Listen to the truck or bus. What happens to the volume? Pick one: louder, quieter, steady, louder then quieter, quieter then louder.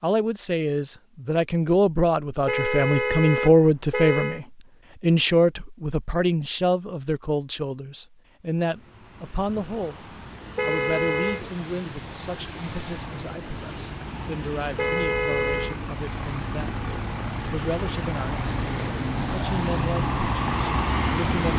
louder.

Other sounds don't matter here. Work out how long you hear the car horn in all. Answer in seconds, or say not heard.
4 s.